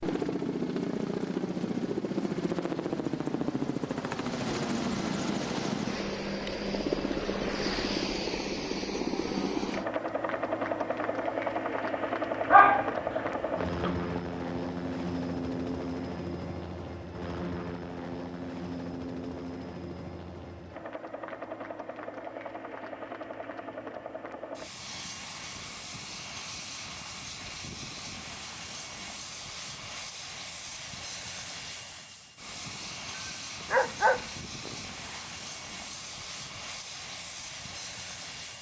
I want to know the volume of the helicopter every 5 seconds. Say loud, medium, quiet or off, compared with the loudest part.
loud, loud, loud, medium, medium, medium, medium, medium.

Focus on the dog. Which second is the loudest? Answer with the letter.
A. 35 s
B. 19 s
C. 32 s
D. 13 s
D.